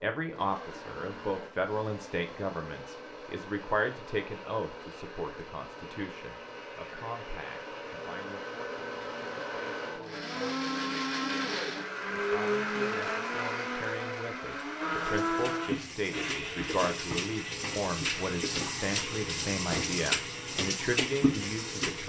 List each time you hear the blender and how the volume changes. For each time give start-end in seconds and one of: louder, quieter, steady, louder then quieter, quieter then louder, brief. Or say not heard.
0.1-22.0 louder then quieter.